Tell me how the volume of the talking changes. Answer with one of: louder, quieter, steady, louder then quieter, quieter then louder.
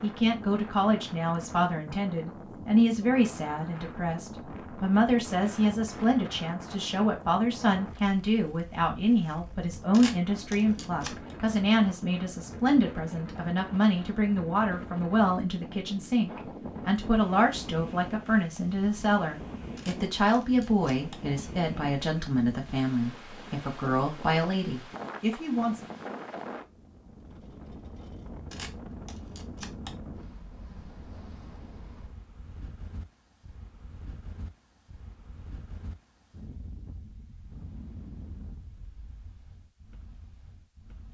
steady.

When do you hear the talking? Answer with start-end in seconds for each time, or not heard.
0.0-25.8.